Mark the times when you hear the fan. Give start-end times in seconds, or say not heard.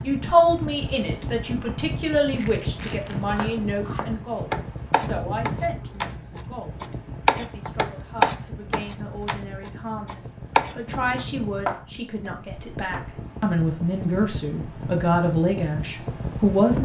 0.0-16.8.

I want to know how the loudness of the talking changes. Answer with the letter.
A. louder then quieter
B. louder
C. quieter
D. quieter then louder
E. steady
D.